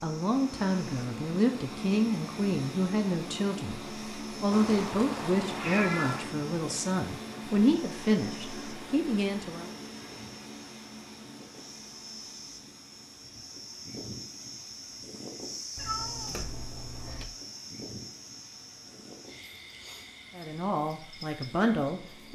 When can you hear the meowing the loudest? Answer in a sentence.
The volume of the meowing peaks at 6 seconds.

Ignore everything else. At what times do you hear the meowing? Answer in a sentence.
You can hear the meowing from 4.5 to 6.3 s and from 15.8 to 17.2 s.